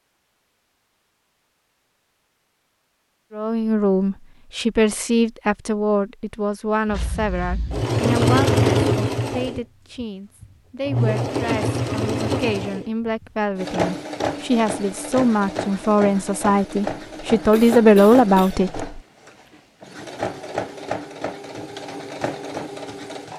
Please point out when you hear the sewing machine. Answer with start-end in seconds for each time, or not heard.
6.9-23.3.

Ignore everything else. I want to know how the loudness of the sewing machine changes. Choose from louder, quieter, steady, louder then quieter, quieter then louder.
quieter.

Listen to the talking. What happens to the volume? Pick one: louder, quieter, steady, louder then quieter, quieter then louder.
quieter then louder.